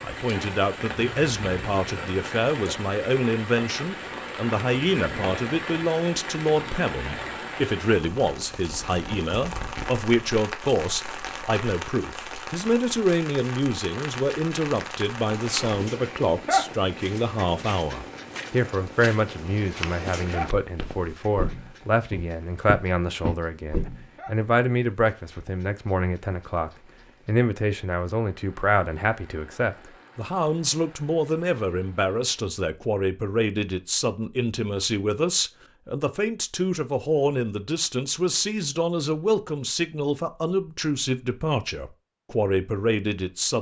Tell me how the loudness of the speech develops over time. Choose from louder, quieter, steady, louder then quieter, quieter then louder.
steady.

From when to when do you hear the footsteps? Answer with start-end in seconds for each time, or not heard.
15.3-24.1.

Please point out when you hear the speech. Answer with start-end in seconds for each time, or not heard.
0.0-43.5.